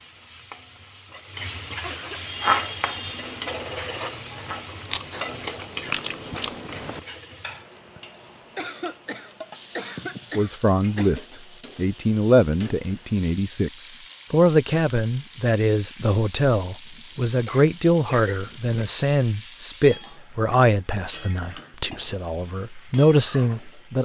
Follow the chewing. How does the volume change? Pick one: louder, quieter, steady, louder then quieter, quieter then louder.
louder then quieter.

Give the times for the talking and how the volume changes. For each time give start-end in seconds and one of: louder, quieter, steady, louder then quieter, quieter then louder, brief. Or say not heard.
10.3-23.9 steady.